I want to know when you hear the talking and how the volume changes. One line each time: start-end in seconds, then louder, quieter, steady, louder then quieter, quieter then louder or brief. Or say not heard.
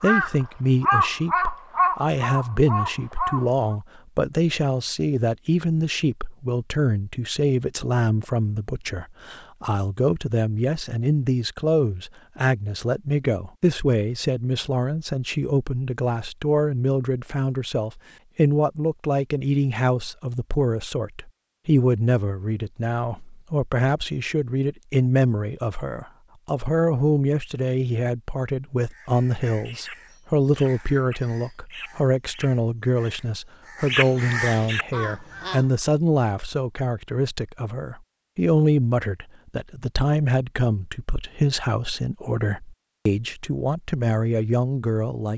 0.0-45.3 steady.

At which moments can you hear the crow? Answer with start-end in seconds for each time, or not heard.
0.0-3.8, 28.9-35.6.